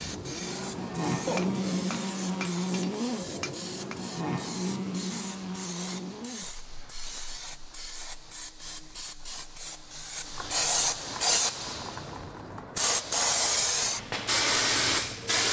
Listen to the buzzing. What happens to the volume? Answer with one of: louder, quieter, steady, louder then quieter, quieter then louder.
quieter.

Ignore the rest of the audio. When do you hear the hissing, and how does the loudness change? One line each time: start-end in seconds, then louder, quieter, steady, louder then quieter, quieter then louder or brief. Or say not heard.
0.0-15.4 louder.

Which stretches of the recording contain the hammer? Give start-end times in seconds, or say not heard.
1.2-4.0.